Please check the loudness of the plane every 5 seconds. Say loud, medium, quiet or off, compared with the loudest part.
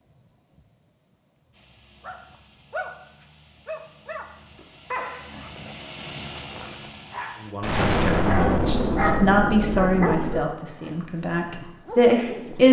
quiet, loud, off.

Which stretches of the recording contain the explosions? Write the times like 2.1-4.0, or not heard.
7.6-10.6.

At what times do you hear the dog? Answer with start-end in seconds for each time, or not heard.
2.0-12.6.